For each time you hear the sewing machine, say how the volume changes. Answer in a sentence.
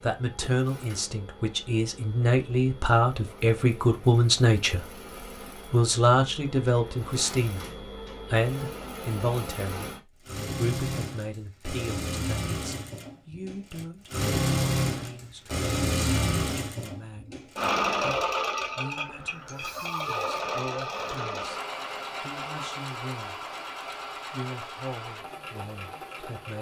You can hear the sewing machine from 0.0 to 26.5 s, getting louder then quieter.